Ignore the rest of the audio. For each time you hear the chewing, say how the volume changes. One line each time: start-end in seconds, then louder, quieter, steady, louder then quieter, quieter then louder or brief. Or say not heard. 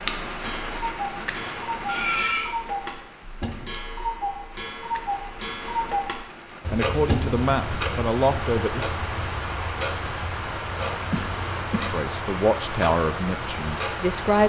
not heard.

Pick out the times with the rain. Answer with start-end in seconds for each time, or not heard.
0.0-14.4.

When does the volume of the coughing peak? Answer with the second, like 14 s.
2 s.